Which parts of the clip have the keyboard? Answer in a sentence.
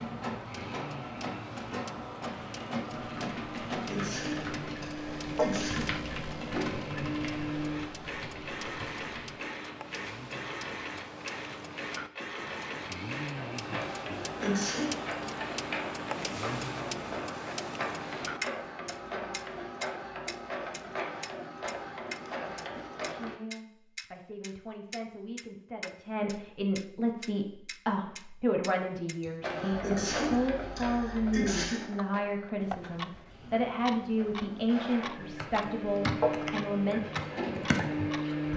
You can hear the keyboard from 2.9 to 9.3 s and from 35.4 to 38.5 s.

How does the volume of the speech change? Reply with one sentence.
The volume of the speech goes up.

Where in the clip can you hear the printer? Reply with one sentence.
The printer can be heard from 0.0 to 23.4 s and from 29.4 to 38.5 s.